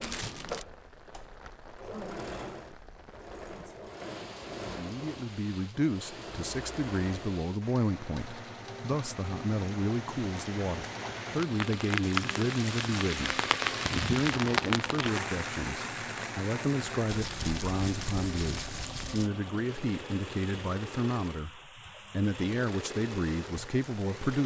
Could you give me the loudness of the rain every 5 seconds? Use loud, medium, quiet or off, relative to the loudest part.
quiet, quiet, loud, medium, quiet.